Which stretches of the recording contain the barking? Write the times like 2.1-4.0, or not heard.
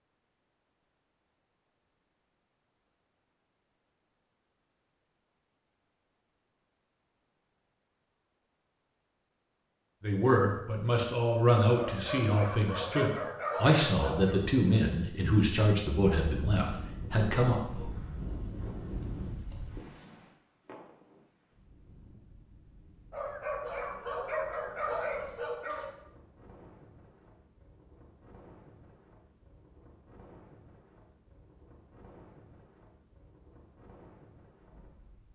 11.8-14.4, 23.1-25.9.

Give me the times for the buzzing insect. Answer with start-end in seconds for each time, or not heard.
not heard.